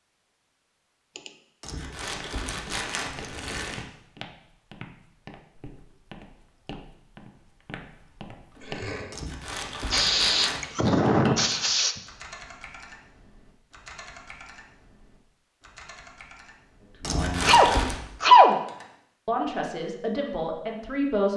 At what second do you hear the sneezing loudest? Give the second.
18 s.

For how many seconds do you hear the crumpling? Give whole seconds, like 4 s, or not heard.
5 s.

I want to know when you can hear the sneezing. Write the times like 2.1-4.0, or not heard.
1.1-2.3, 9.9-12.0, 17.4-18.6.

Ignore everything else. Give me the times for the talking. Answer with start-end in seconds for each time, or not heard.
17.0-18.1, 19.2-21.3.